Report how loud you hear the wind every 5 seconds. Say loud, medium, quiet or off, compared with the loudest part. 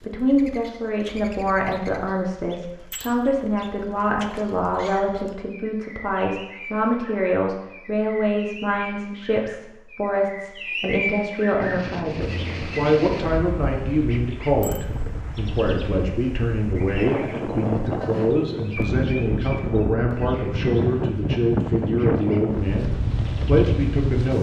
off, off, medium, loud, loud.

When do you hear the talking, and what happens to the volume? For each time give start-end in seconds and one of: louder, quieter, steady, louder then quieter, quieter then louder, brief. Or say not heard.
0.0-24.3 steady.